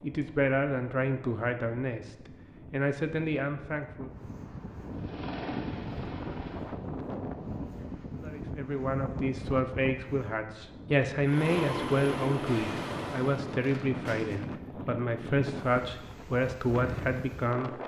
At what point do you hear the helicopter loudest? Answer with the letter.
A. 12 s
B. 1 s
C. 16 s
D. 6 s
A.